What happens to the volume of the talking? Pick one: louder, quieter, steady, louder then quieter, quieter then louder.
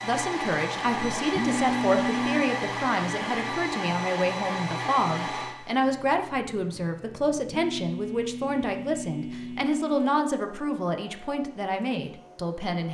steady.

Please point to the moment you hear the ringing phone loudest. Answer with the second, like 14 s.
2 s.